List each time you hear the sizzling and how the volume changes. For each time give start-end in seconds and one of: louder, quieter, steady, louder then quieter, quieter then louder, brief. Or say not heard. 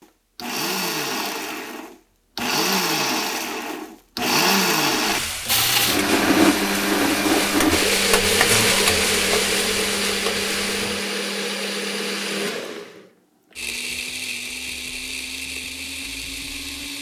5.0-11.0 louder then quieter.